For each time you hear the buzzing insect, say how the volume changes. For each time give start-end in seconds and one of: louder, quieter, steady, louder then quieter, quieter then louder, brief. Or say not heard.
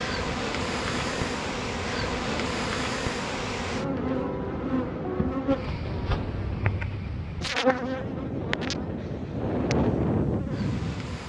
0.0-11.2 quieter.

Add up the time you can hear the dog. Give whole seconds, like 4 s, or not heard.
not heard.